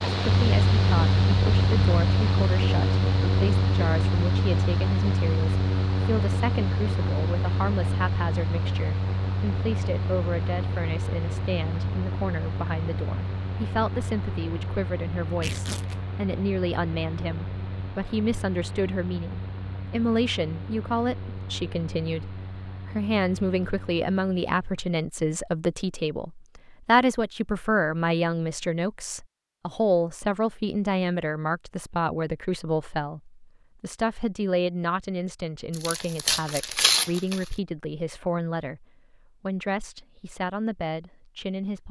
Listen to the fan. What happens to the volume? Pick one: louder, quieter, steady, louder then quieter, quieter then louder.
quieter.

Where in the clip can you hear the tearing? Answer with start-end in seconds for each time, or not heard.
15.3-16.0, 35.7-37.5.